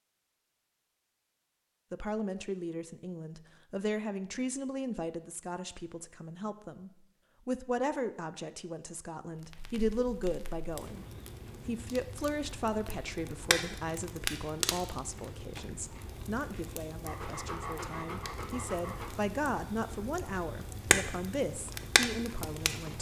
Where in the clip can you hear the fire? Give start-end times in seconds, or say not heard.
9.3-22.9.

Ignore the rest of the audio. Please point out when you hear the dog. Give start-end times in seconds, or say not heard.
17.1-19.1.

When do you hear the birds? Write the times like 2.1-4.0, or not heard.
not heard.